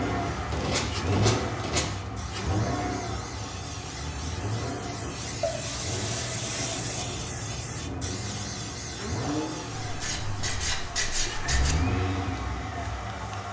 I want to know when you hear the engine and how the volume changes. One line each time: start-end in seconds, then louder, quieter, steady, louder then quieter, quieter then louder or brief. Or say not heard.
0.0-13.4 quieter then louder.